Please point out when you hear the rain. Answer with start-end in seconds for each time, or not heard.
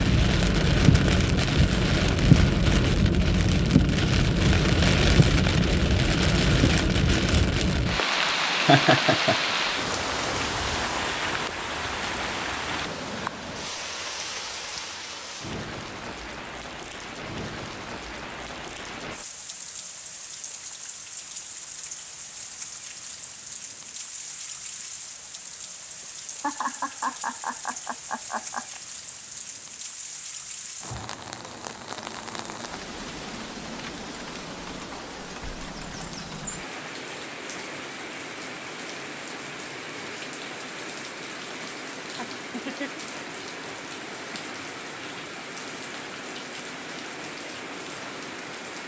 0.0-48.8.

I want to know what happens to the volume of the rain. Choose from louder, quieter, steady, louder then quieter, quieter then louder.
quieter.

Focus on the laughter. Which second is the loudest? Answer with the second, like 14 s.
9 s.